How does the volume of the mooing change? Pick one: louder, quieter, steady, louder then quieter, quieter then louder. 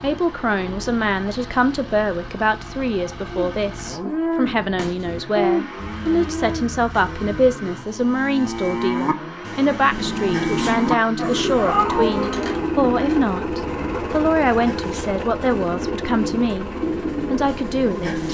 steady.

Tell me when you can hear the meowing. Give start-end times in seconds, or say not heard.
5.8-7.5, 11.6-12.1.